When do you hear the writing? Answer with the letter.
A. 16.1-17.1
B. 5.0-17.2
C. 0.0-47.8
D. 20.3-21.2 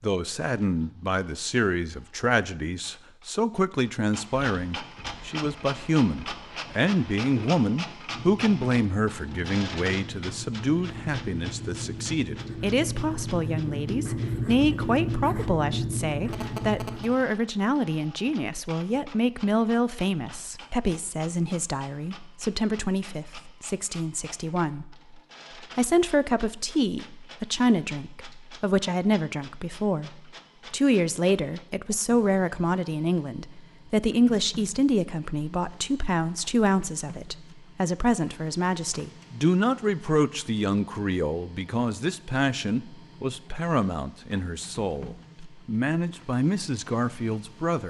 B.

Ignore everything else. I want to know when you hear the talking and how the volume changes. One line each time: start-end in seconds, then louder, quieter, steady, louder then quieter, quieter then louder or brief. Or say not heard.
0.0-47.8 steady.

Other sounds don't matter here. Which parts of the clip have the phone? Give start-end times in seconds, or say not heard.
16.1-17.1.